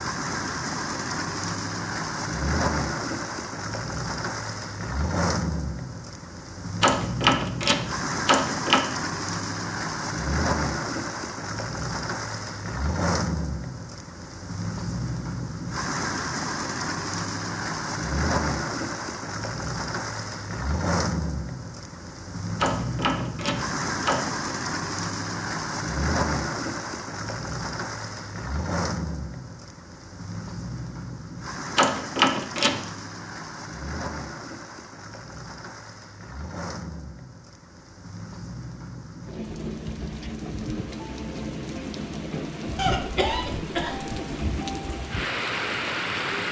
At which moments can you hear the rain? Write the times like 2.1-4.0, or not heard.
0.0-46.4.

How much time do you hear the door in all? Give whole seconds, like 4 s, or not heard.
5 s.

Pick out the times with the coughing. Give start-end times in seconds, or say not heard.
42.8-44.1.